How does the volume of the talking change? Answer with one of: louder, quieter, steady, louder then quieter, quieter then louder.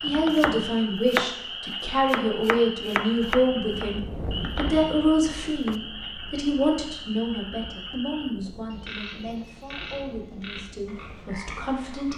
quieter.